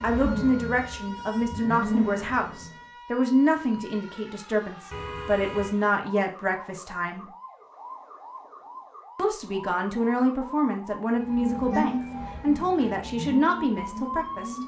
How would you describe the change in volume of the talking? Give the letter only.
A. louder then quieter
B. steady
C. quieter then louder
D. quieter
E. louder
B.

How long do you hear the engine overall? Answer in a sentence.
You can hear the engine for 6 seconds altogether.